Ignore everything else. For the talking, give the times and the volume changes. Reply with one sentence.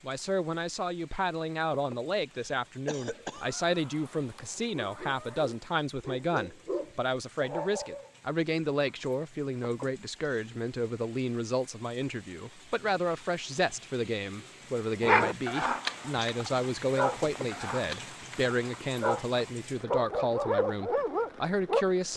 You can hear the talking from 0.0 to 22.1 s, at a steady volume.